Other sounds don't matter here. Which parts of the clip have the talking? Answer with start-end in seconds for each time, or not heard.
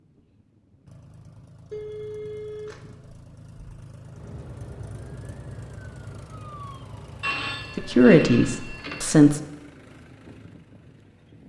7.8-9.4.